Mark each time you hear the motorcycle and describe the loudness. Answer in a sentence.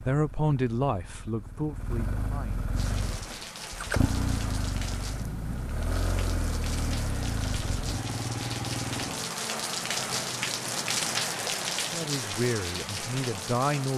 The motorcycle can be heard from 0.0 to 9.3 s, getting louder.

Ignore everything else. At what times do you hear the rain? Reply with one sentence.
You can hear the rain from 2.8 to 13.9 s.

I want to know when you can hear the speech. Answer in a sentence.
The speech can be heard from 0.0 to 3.2 s and from 11.8 to 13.9 s.